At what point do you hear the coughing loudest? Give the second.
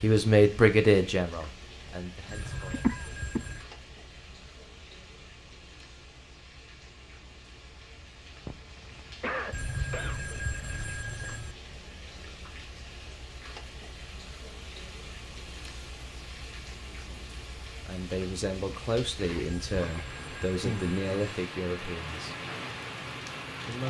3 s.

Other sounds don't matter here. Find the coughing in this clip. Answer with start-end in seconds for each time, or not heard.
2.7-3.4, 8.4-10.2, 19.1-20.0.